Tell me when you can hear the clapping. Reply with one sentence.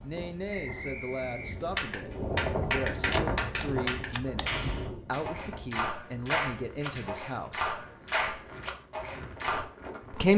The clapping can be heard from 1.8 to 9.7 s.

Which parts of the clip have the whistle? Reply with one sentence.
You can hear the whistle from 0.5 to 2.0 s.